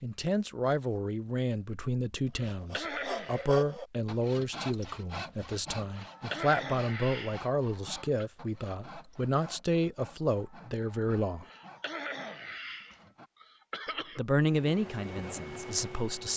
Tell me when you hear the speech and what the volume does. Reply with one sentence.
The speech can be heard from 0.0 to 11.4 s, at a steady volume; and briefly from 14.2 to 16.3 s.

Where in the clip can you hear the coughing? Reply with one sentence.
You can hear the coughing from 2.4 to 3.5 s, from 5.9 to 8.2 s and from 11.4 to 14.2 s.